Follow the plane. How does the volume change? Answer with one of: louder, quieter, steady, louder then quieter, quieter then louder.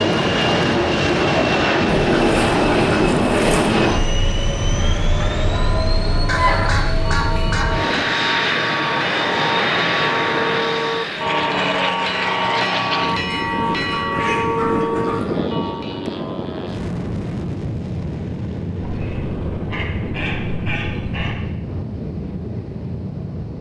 quieter.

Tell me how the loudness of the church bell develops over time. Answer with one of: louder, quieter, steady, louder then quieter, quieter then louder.
louder.